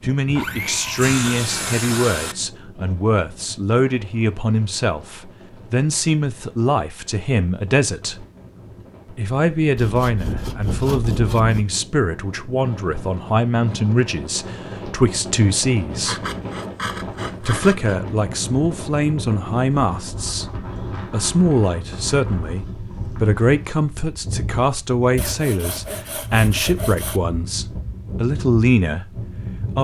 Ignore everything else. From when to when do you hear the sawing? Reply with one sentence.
You can hear the sawing from 0.3 to 2.4 s, from 9.8 to 11.7 s, from 16.1 to 17.9 s and from 25.1 to 27.2 s.